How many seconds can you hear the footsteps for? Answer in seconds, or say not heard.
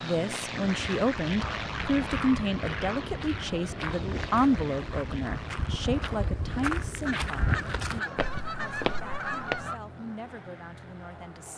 9 s.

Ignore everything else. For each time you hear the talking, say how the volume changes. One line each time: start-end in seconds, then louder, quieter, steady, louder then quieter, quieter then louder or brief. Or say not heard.
0.0-11.5 quieter.